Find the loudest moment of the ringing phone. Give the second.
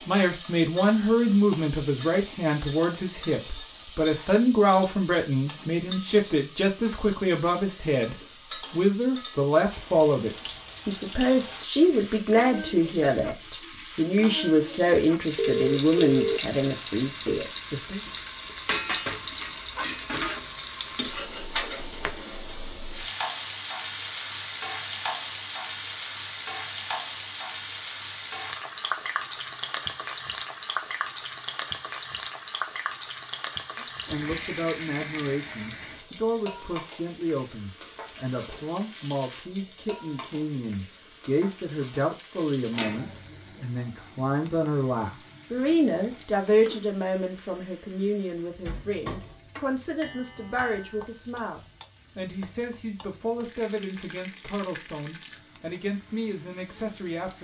16 s.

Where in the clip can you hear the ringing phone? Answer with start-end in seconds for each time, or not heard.
15.3-17.4.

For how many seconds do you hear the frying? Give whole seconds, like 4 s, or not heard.
57 s.